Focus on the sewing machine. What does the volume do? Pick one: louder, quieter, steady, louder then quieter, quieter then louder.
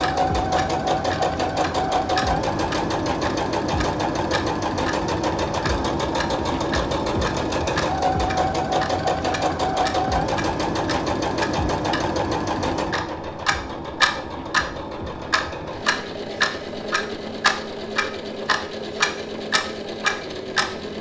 quieter.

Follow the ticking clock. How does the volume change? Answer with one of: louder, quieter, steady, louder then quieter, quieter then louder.
louder.